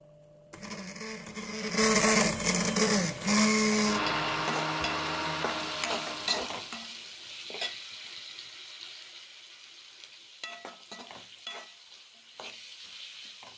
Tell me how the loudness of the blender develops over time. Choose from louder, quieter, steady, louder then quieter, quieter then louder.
louder then quieter.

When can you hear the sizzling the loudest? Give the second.
6 s.